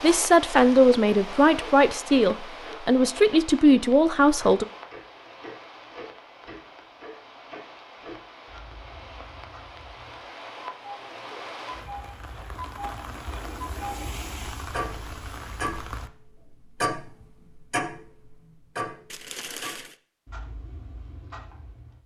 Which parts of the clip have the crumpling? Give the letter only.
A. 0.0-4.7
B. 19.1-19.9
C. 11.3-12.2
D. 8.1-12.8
B.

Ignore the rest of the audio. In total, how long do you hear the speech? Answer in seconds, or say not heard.
5 s.